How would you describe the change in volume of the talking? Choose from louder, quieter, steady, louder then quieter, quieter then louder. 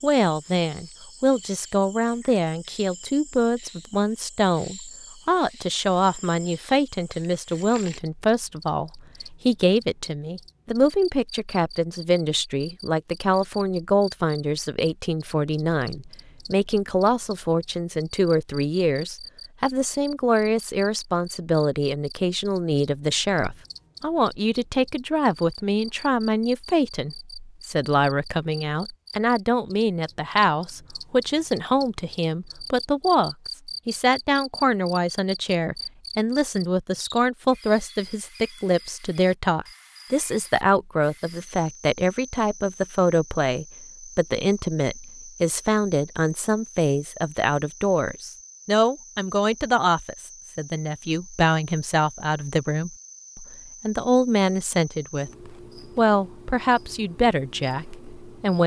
steady.